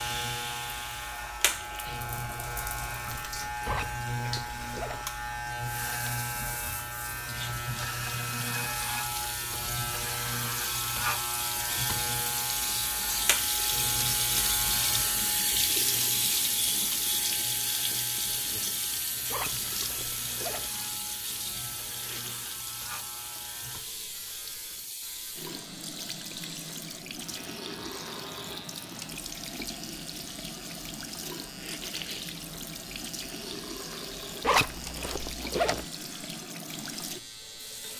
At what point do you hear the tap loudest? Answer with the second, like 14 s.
16 s.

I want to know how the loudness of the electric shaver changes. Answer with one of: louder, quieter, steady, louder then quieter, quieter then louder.
quieter.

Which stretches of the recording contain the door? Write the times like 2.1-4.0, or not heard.
not heard.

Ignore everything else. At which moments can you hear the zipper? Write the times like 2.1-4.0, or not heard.
3.6-5.0, 19.3-20.7, 34.4-35.9.